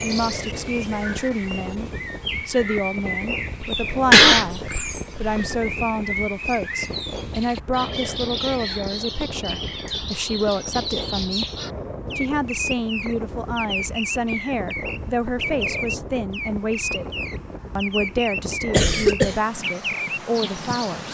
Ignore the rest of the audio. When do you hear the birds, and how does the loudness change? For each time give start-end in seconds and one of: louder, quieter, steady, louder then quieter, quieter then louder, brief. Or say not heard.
0.0-21.0 steady.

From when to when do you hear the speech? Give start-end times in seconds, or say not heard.
0.0-11.4, 12.2-17.1, 17.8-21.0.